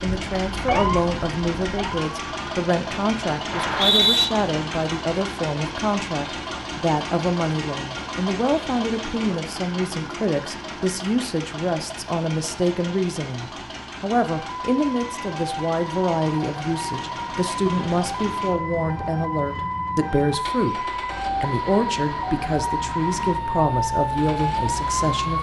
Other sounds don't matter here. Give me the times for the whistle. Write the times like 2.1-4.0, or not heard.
3.5-4.2.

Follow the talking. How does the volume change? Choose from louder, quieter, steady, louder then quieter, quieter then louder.
steady.